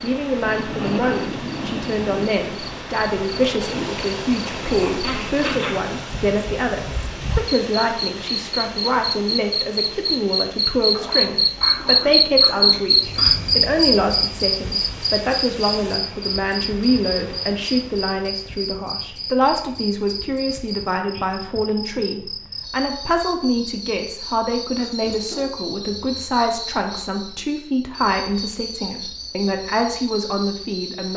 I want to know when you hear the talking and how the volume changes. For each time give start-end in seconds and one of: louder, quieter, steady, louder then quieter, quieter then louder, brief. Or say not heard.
0.0-31.1 steady.